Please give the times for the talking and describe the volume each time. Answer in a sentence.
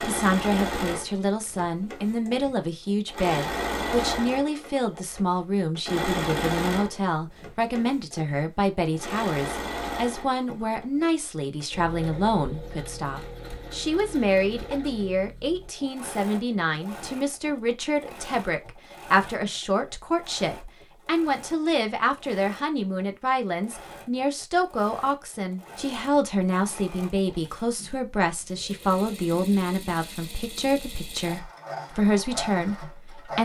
You can hear the talking from 0.0 to 33.4 s, at a steady volume.